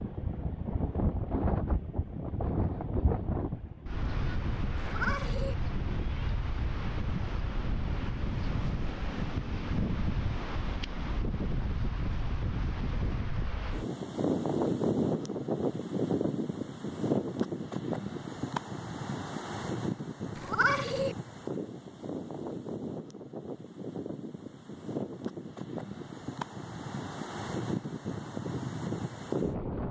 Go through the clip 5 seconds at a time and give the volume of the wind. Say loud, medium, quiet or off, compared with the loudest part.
loud, loud, loud, loud, medium, loud.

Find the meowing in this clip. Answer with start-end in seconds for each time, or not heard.
4.8-5.5, 20.4-21.1.